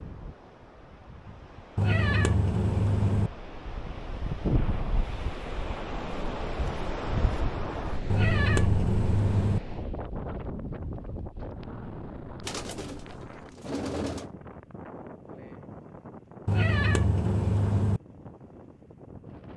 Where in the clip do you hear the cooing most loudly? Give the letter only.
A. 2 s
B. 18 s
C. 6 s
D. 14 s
D.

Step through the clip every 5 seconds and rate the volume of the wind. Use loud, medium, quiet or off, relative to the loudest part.
loud, loud, medium, medium.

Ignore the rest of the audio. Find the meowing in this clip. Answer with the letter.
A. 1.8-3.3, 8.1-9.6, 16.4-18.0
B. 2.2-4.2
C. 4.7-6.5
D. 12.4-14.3
A.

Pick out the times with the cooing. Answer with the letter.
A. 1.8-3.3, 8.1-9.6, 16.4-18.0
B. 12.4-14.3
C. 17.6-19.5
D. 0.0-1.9
B.